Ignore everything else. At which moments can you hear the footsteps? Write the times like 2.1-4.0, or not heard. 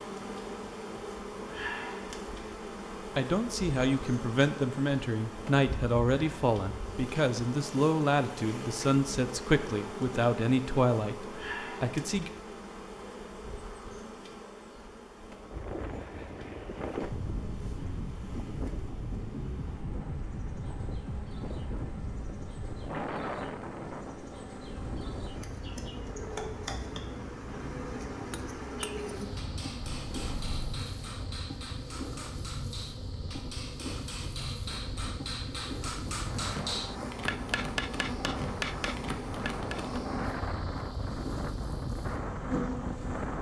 not heard.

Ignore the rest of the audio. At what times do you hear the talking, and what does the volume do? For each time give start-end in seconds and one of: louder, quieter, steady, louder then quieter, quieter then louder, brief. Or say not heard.
3.1-12.3 steady.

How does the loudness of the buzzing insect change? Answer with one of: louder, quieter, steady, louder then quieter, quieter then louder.
quieter then louder.